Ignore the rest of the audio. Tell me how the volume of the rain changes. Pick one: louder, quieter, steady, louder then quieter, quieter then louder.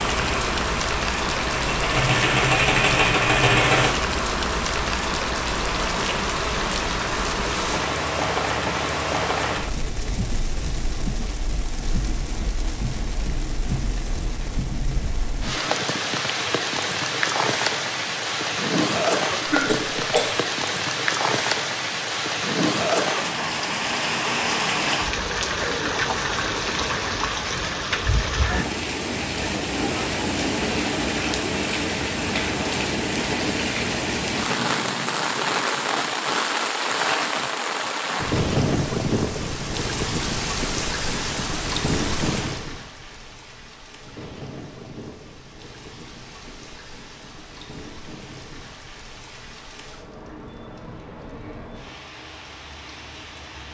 quieter.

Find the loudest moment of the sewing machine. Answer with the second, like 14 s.
3 s.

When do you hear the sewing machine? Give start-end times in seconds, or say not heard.
0.0-3.9.